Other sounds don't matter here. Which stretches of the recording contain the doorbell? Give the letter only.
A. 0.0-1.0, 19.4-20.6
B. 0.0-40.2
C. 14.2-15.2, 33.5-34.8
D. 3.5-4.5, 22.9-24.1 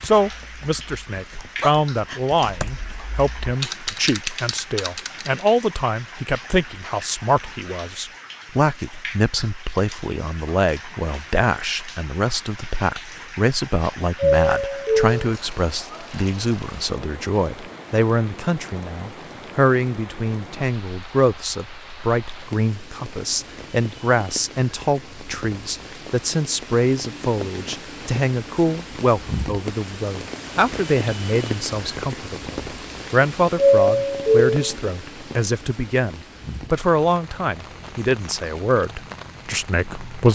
C.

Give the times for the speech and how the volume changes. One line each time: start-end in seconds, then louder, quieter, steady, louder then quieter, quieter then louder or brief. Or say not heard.
0.0-40.2 steady.